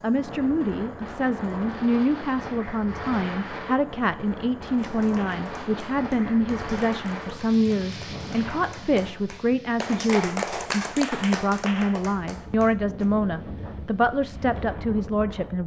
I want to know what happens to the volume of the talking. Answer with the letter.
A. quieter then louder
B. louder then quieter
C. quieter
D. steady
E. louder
D.